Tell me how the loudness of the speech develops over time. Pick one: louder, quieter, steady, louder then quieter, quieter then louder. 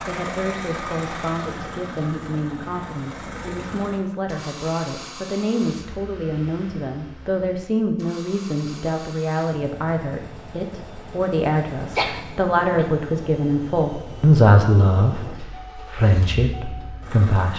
louder.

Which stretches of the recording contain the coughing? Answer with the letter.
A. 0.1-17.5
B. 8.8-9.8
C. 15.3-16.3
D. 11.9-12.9
D.